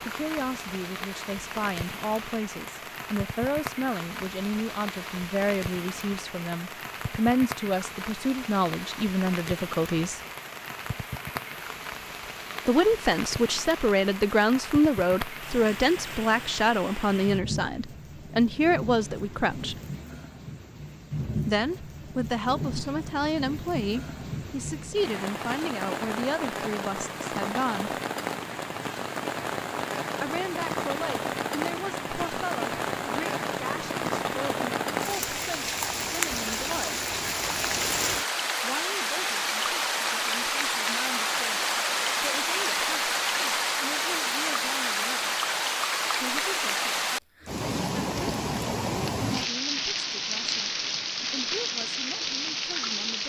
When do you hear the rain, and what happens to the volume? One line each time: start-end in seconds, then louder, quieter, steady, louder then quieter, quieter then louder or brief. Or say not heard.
0.0-53.2 louder.